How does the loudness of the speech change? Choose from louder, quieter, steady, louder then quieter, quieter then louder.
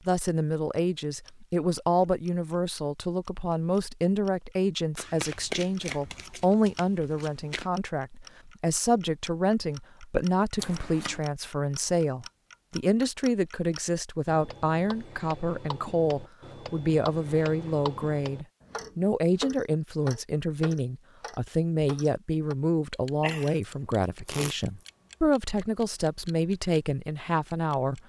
steady.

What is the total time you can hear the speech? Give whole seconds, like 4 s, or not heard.
28 s.